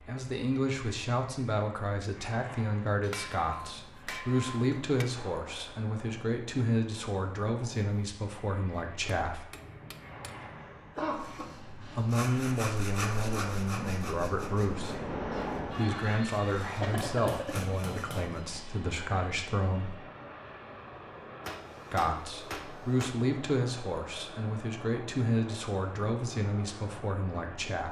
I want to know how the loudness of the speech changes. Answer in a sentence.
The volume of the speech stays about the same.